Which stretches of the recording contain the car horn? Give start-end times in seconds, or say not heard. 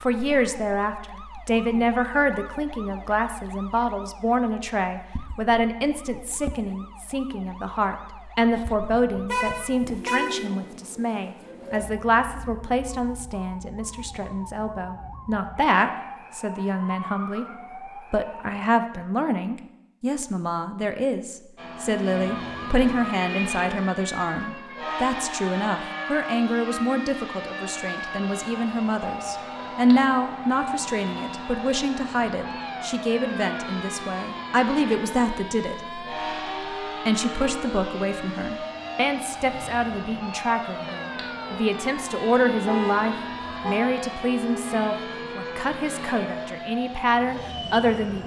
9.2-10.4, 23.1-23.8, 42.6-43.8.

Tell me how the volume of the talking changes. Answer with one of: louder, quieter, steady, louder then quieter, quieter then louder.
steady.